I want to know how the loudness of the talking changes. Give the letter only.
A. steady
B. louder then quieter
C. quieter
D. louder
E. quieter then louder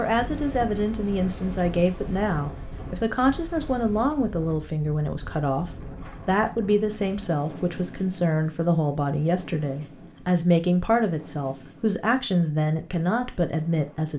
A.